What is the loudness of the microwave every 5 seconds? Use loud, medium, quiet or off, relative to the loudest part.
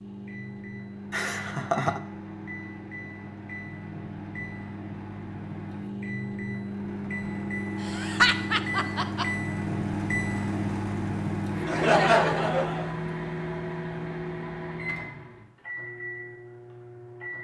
medium, loud, loud, medium.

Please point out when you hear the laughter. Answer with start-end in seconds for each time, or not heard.
1.1-2.0, 7.8-9.2, 11.7-12.9.